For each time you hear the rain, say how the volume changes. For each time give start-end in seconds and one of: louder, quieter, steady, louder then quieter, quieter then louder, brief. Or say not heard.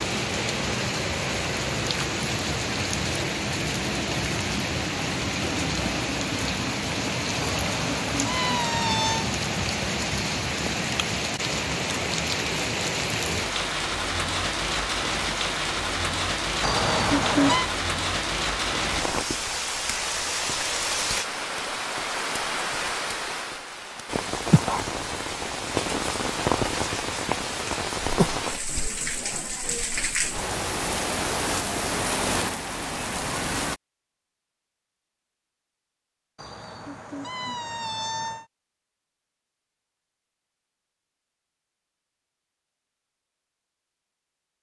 0.0-33.8 steady.